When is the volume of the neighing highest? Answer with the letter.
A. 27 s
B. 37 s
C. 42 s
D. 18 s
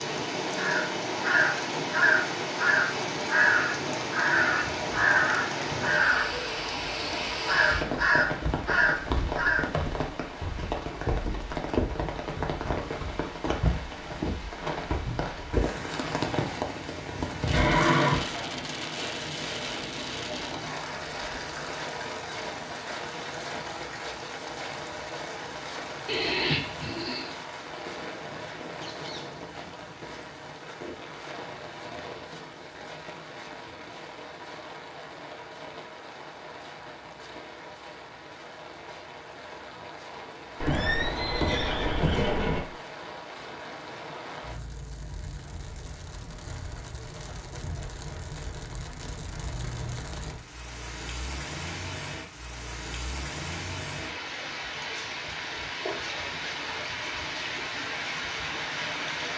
D.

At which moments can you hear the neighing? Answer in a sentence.
The neighing can be heard from 17.5 to 18.2 s, from 26.1 to 27.3 s and from 40.6 to 42.6 s.